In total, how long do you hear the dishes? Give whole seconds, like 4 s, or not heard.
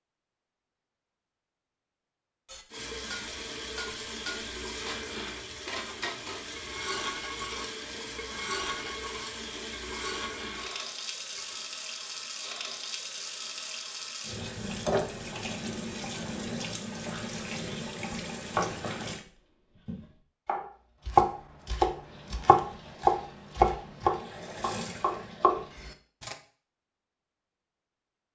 9 s.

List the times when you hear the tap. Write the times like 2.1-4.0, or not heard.
2.7-19.2, 22.0-25.8.